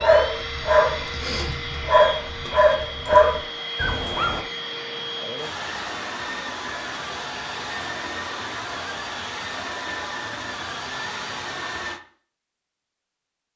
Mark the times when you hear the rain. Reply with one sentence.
You can't hear the rain here.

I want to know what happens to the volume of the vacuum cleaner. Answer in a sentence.
The volume of the vacuum cleaner stays about the same.